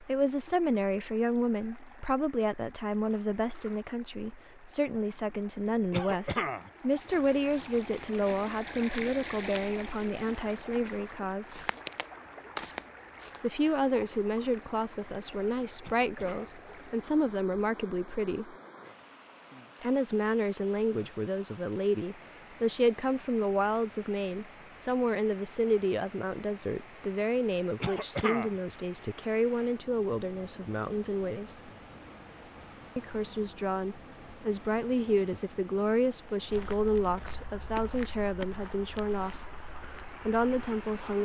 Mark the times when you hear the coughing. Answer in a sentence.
You can hear the coughing from 5.9 to 6.7 s, from 15.8 to 16.6 s and from 27.8 to 28.6 s.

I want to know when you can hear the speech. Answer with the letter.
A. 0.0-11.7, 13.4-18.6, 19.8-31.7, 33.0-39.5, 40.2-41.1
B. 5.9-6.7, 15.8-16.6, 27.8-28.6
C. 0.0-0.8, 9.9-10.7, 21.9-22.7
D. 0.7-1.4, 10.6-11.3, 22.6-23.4
A.